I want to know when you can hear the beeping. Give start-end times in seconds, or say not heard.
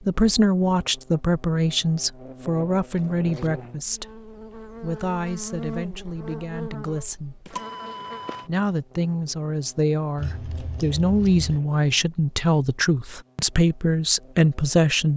7.5-8.5.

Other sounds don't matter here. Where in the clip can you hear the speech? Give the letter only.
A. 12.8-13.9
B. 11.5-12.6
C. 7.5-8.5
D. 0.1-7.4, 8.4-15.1
D.